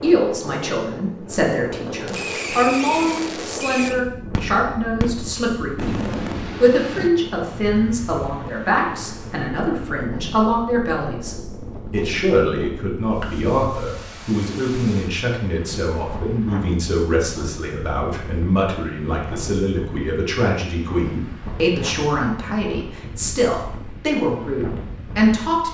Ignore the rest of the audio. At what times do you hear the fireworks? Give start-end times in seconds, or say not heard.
2.0-7.1.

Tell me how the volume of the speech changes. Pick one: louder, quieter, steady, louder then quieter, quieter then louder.
steady.